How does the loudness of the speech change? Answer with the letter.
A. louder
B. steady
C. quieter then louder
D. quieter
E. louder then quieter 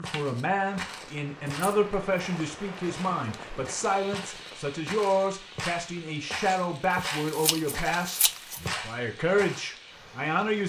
B.